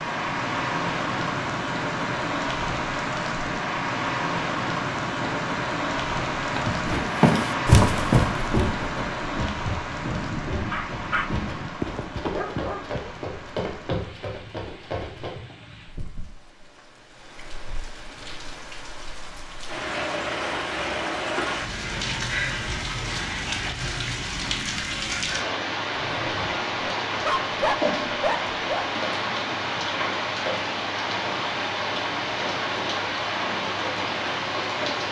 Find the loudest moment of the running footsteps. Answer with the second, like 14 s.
8 s.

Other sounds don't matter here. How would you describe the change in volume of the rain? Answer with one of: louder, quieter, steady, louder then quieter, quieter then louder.
quieter then louder.